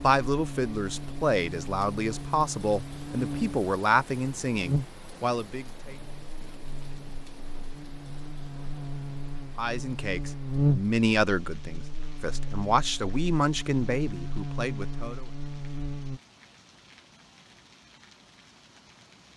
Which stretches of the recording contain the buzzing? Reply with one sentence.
You can hear the buzzing from 0.0 to 16.2 s.